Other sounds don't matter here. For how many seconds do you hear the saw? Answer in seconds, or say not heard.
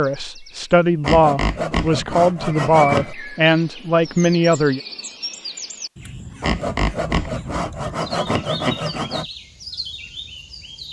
5 s.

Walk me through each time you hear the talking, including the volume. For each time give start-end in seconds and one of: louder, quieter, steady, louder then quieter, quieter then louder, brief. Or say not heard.
0.0-4.8 steady.